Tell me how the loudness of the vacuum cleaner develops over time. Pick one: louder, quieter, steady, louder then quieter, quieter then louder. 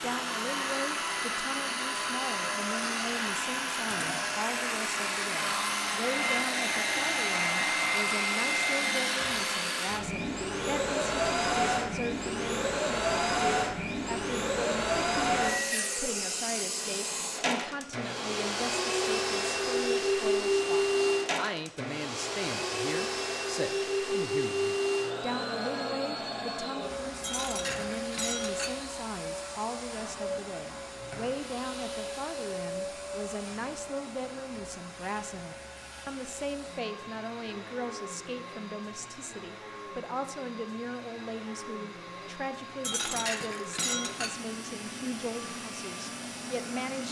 quieter.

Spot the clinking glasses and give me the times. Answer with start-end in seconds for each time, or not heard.
3.9-4.3, 27.2-28.7, 42.8-44.3.